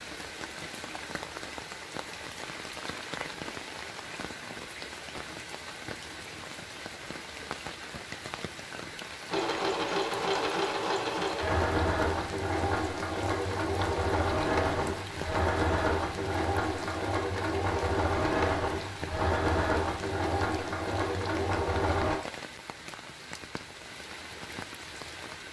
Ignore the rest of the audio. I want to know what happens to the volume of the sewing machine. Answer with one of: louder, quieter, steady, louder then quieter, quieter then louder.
steady.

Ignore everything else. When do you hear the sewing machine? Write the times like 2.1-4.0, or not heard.
9.3-22.2.